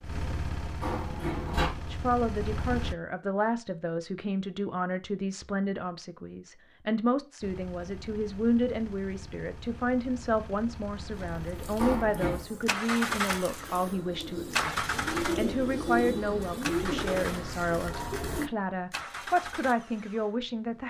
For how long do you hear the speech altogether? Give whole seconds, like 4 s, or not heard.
19 s.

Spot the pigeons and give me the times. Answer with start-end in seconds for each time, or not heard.
11.1-18.5.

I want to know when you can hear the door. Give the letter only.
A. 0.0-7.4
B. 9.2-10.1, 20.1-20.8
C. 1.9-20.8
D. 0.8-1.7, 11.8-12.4
D.